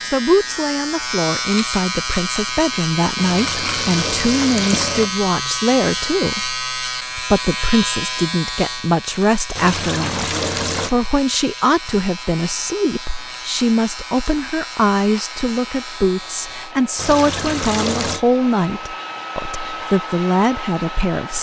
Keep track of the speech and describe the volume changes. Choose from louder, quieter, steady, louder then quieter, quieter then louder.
steady.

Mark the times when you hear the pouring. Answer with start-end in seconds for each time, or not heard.
3.1-5.1, 9.6-10.9, 16.9-18.2.